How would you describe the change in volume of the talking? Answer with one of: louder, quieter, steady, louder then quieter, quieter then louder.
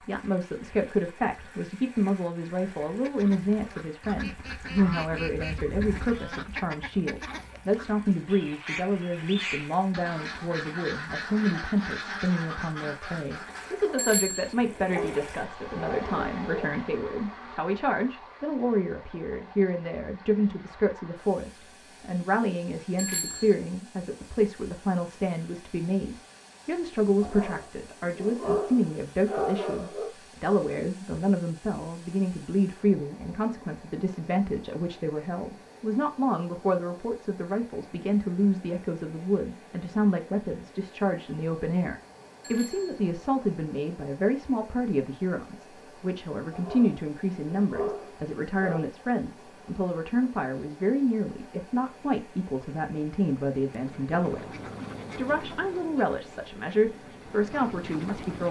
steady.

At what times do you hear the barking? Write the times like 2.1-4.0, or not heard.
13.7-16.7, 27.2-30.1, 46.5-48.9.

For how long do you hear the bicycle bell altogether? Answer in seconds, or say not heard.
2 s.